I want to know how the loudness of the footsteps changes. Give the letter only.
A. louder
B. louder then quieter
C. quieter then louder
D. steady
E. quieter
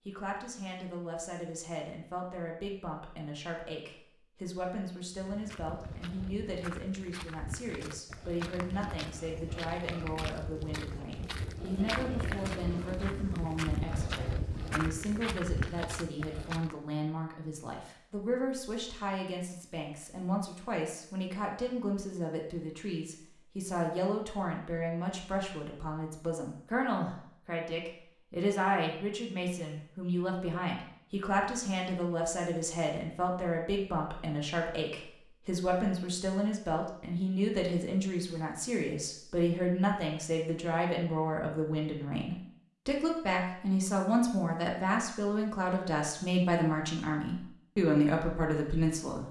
A.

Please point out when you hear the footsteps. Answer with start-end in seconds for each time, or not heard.
5.1-16.8.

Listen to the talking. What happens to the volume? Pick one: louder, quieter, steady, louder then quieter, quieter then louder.
louder.